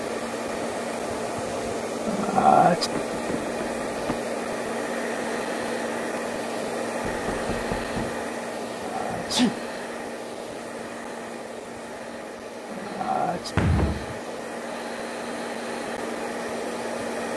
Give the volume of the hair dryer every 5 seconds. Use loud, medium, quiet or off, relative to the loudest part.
loud, loud, medium, loud.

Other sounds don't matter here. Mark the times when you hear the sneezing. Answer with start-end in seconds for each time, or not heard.
2.0-2.9, 8.6-9.6, 12.7-13.6.